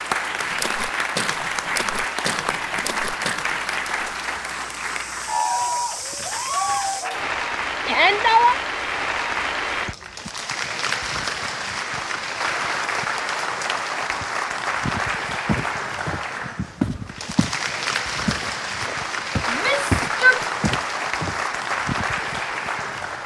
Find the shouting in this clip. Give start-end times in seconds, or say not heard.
7.8-8.6, 19.4-20.4.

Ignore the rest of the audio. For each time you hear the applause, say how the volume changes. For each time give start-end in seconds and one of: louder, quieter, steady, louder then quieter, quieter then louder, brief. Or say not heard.
0.0-23.2 steady.